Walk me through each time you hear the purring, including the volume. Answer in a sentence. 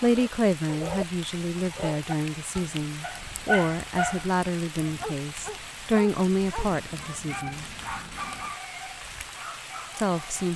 The purring can't be heard in this clip.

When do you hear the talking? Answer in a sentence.
You can hear the talking from 0.0 to 7.7 s and from 9.9 to 10.5 s.